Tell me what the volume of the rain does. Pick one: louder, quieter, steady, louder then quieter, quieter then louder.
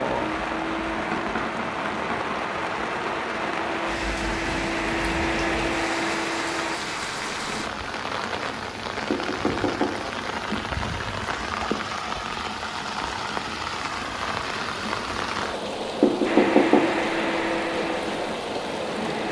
steady.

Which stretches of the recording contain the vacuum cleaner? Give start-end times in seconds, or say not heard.
0.0-6.8, 16.2-19.2.